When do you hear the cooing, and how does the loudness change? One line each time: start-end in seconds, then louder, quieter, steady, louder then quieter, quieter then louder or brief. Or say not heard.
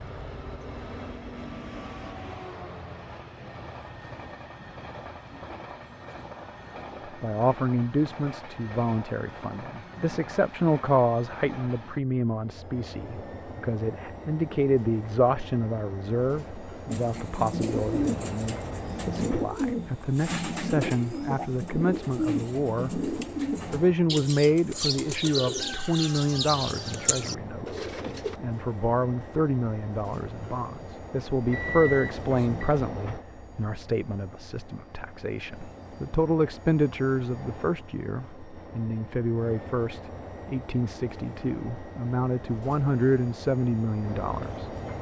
16.9-28.4 steady.